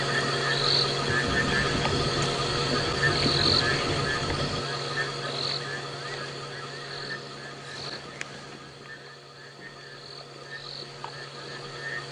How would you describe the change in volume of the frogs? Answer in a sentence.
The volume of the frogs goes down.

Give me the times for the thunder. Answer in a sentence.
You can hear the thunder from 1.2 to 4.7 s.